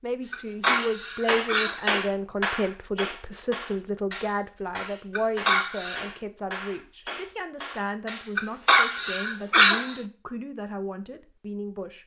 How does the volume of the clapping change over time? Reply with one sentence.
The volume of the clapping goes down.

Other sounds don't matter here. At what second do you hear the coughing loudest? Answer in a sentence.
The loudest moment of the coughing is at 10 seconds.